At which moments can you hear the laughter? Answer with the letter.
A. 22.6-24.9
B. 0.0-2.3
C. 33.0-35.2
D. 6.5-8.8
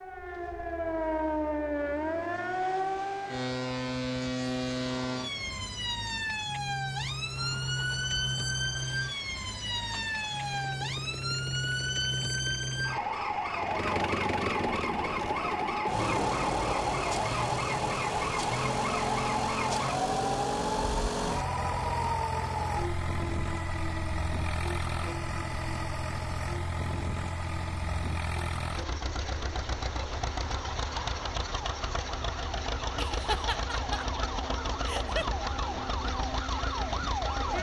C.